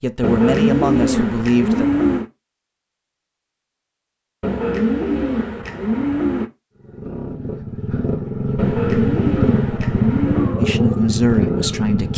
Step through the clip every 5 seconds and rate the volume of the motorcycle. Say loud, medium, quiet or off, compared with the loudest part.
off, loud, loud.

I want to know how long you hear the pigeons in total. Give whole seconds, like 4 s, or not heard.
6 s.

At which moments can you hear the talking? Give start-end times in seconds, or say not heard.
0.0-1.9, 10.6-12.1.